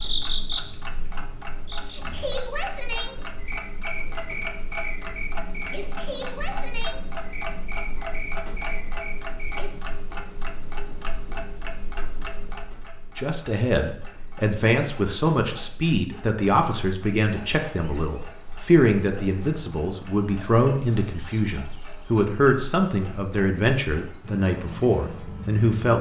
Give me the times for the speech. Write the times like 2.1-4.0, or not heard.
13.2-25.9.